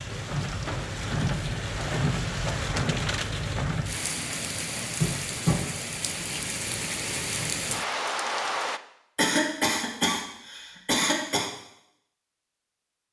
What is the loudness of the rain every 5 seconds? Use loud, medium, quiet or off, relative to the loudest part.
loud, loud, off.